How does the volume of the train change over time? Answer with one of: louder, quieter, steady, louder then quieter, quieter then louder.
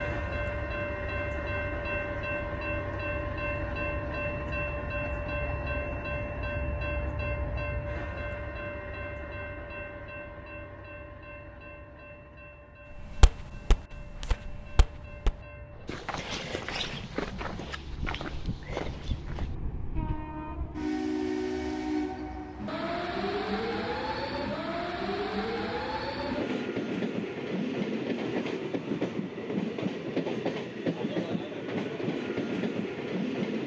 quieter then louder.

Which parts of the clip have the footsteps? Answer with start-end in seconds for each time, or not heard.
12.9-19.6.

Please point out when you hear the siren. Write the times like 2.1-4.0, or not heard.
not heard.